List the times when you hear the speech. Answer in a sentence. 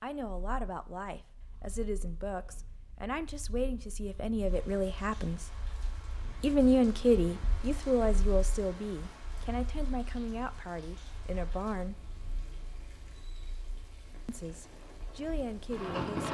The speech can be heard from 0.0 to 5.5 s, from 6.4 to 12.0 s and from 14.2 to 16.3 s.